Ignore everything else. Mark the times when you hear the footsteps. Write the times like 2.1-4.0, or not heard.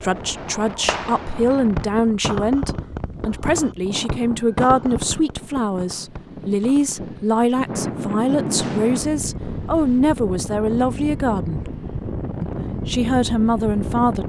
not heard.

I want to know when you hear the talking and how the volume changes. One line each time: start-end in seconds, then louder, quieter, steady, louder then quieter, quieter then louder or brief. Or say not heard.
0.0-11.8 steady
12.4-14.2 brief.